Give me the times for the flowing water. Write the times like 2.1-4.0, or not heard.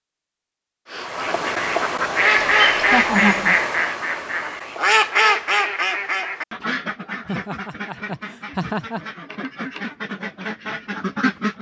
not heard.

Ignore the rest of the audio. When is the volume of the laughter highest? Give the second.
3 s.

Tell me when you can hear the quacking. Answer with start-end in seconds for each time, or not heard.
0.9-11.5.